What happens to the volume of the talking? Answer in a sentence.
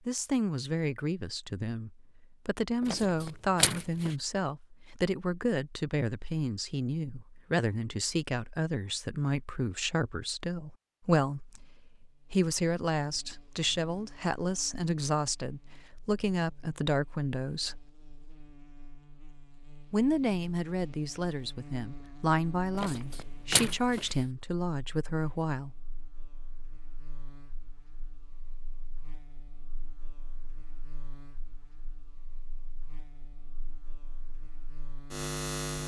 The loudness of the talking stays about the same.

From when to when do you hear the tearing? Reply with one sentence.
The tearing can be heard from 2.8 to 4.2 s and from 22.8 to 24.1 s.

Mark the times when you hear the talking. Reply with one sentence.
You can hear the talking from 0.1 to 17.9 s and from 19.9 to 25.8 s.